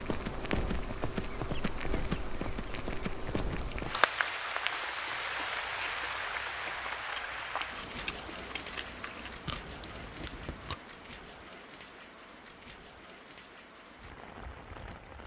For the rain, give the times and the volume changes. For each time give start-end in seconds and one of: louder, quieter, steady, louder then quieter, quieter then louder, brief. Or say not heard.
0.0-15.2 quieter.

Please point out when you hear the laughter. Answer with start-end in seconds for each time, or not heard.
not heard.